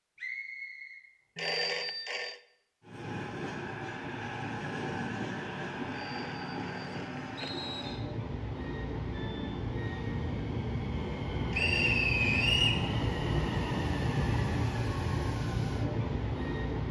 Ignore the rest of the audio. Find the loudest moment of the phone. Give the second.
2 s.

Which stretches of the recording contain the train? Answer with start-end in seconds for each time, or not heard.
2.8-16.8.